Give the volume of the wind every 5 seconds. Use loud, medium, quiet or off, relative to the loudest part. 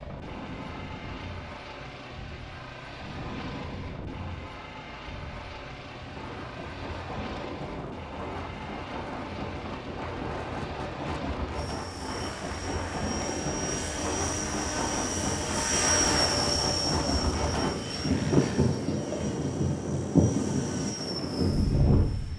quiet, quiet, medium, loud, loud.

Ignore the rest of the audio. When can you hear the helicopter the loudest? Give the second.
16 s.